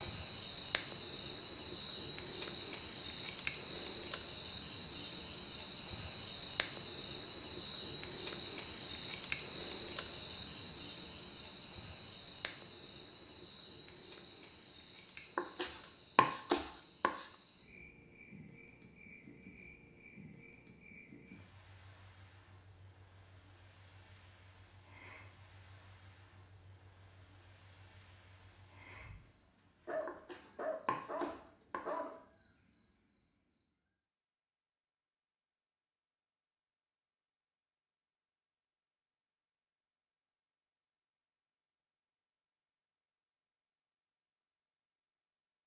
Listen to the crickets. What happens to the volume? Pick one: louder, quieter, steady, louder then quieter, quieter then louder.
quieter.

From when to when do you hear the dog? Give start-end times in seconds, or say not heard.
29.9-32.2.